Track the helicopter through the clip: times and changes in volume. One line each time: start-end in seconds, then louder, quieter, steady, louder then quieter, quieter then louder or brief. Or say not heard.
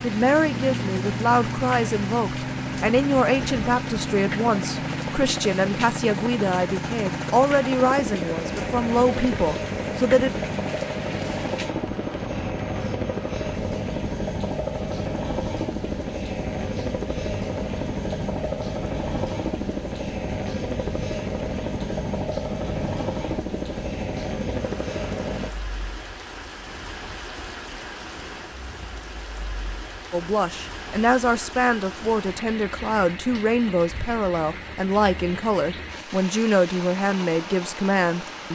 0.0-25.5 steady.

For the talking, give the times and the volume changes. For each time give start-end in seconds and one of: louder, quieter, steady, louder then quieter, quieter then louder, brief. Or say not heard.
0.0-10.3 steady
30.1-38.5 steady.